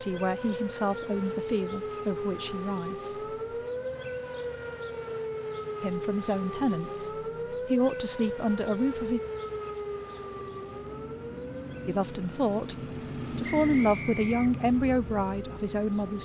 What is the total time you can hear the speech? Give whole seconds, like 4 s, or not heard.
11 s.